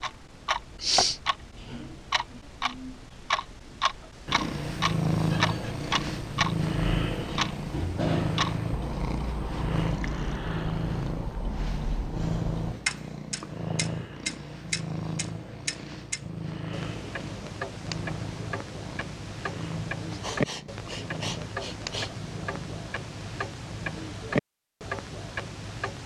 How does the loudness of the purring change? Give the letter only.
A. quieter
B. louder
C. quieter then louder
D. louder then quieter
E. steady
A.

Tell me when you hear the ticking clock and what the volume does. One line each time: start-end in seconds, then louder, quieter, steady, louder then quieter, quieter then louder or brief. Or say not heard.
0.0-26.0 steady.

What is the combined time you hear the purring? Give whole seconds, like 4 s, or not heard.
20 s.